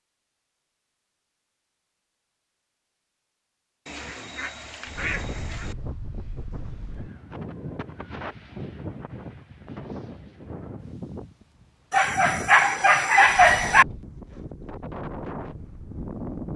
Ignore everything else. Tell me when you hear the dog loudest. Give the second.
13 s.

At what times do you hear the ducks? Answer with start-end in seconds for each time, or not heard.
3.9-5.8.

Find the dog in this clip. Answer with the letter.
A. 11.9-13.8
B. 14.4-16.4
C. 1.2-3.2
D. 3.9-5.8
A.